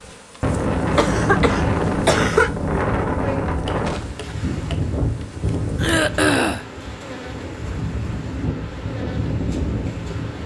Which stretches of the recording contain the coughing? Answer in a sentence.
You can hear the coughing from 0.9 to 2.5 s and from 5.8 to 6.7 s.